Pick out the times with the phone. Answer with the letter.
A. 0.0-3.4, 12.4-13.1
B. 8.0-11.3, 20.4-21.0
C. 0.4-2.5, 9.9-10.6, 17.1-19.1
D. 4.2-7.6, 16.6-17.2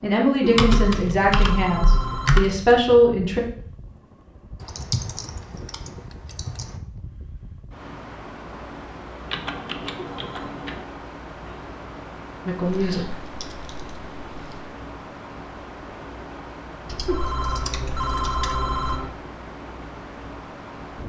C.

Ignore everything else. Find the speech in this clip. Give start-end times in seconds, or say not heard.
0.0-3.4, 12.4-13.1.